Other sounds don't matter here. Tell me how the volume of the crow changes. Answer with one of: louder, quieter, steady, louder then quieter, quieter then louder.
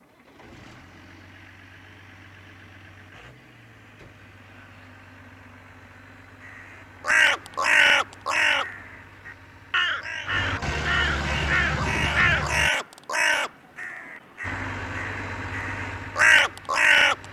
quieter then louder.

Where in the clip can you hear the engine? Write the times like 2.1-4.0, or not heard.
0.0-12.7, 14.4-17.2.